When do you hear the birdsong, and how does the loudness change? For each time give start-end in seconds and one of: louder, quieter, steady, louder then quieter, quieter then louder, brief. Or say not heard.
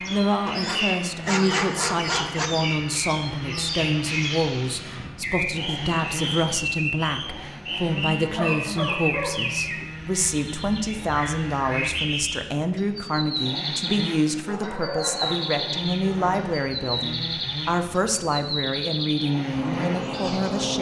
0.0-20.7 steady.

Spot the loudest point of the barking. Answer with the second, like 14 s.
1 s.